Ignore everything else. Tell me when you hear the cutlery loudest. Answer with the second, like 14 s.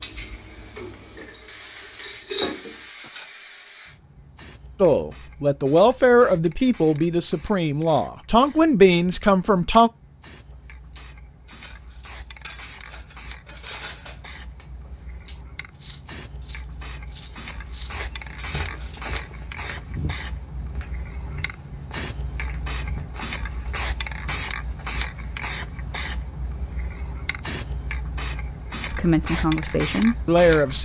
2 s.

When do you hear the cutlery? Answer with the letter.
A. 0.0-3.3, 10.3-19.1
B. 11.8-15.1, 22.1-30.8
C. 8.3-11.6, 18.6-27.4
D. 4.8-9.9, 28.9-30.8
A.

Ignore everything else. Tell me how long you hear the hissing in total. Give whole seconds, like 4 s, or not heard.
31 s.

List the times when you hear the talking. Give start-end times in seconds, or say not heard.
4.8-9.9, 28.9-30.8.